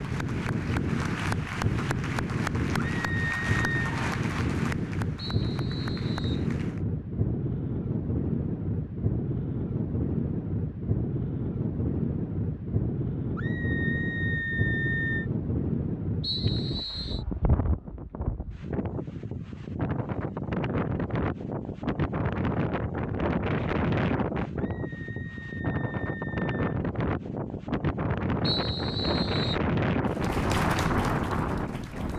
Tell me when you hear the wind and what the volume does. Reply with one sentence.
The wind can be heard from 0.0 to 32.1 s, at a steady volume.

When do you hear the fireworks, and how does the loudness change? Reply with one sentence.
You can't hear the fireworks here.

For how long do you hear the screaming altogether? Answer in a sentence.
The screaming can be heard for 5 seconds in total.